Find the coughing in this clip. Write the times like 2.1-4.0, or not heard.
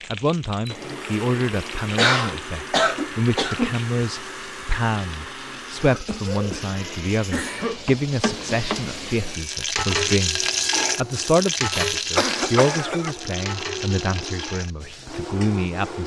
1.9-3.8, 5.8-7.8, 11.7-13.2.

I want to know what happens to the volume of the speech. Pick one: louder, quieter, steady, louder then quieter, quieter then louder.
steady.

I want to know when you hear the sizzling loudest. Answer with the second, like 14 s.
10 s.